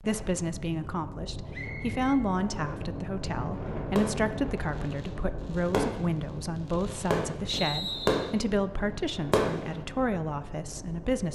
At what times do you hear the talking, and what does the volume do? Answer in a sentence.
You can hear the talking from 0.0 to 11.3 s, at a steady volume.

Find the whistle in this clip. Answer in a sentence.
The whistle can be heard from 1.5 to 2.2 s and from 7.5 to 8.3 s.